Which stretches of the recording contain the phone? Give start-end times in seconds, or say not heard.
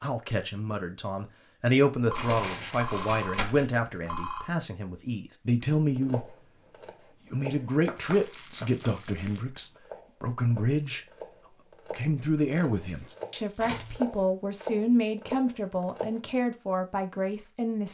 2.0-4.5, 13.6-14.0.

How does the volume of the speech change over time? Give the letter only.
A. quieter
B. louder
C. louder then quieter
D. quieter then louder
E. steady
E.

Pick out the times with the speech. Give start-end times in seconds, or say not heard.
0.0-6.3, 7.3-11.0, 11.8-17.8.